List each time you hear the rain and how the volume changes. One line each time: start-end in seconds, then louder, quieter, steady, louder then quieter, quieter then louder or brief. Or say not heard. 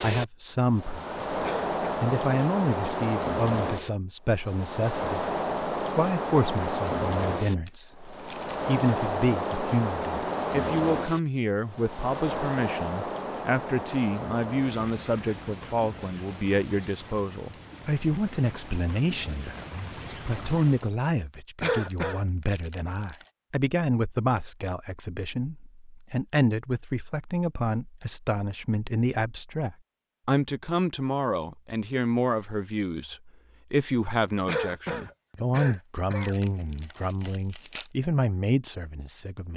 0.0-20.9 quieter.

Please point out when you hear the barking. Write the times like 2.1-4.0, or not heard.
not heard.